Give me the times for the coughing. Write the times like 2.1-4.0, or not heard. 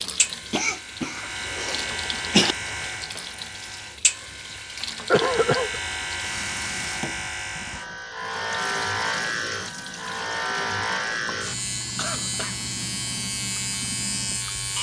0.5-2.5, 5.1-5.8, 11.9-12.6.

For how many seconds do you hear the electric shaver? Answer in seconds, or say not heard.
15 s.